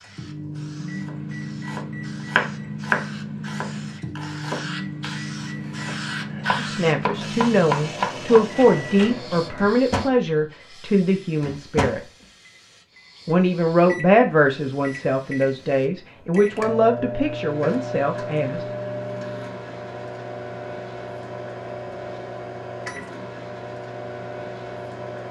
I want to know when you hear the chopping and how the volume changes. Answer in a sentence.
You can hear the chopping from 1.0 to 9.3 s, getting quieter then louder.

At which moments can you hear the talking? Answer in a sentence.
You can hear the talking from 6.5 to 12.0 s and from 13.2 to 18.6 s.